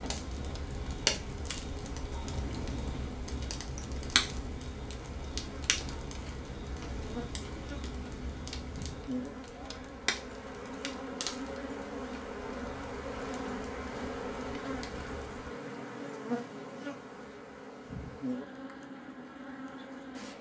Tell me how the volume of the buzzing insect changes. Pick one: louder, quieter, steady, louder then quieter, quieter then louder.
louder.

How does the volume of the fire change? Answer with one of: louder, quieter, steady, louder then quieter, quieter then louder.
quieter.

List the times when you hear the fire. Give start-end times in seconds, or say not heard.
0.0-15.5.